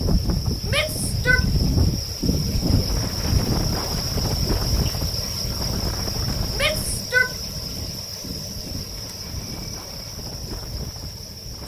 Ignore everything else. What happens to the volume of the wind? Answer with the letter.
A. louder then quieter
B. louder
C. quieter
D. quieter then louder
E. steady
C.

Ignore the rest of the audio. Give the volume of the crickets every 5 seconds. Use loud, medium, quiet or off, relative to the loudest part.
loud, loud, medium.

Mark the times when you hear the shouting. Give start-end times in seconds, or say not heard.
0.7-1.4, 6.5-7.3.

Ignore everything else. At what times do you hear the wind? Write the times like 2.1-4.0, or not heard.
0.0-11.6.